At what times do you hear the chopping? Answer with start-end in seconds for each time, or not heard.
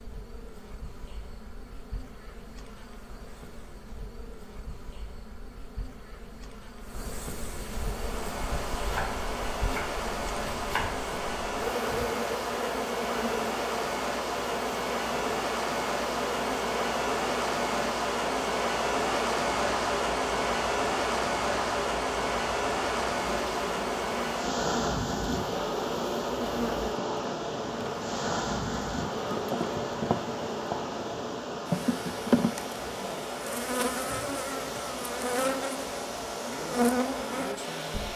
8.8-10.8.